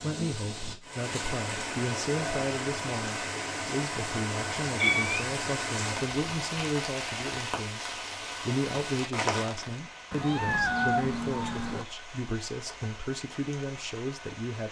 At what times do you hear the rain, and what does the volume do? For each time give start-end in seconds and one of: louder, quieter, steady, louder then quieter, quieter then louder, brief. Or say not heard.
0.0-14.6 quieter.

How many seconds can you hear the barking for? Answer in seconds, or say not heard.
not heard.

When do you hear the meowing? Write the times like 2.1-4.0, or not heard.
4.7-5.2, 10.1-11.8.